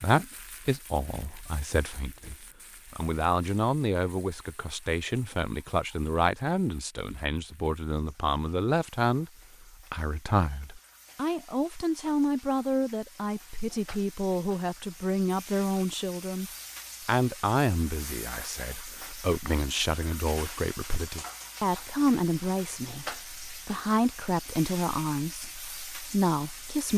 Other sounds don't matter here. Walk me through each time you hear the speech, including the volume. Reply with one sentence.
The speech can be heard from 0.0 to 26.9 s, at a steady volume.